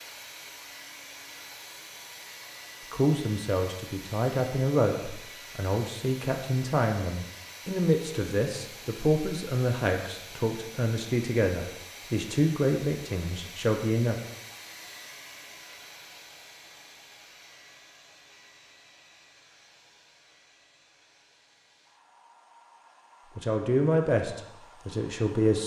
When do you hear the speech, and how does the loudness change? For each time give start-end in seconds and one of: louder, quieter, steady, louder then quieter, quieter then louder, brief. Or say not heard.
2.9-14.2 steady
23.4-25.6 brief.